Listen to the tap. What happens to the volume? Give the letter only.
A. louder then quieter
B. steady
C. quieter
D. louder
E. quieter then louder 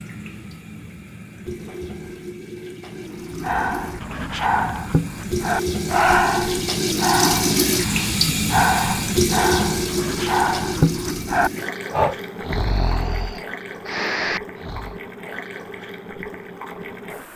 A.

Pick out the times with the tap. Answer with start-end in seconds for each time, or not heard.
0.0-17.3.